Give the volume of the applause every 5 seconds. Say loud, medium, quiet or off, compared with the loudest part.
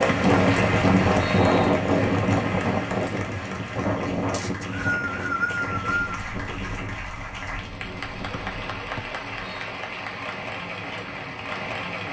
loud, medium, loud.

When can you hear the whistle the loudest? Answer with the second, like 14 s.
5 s.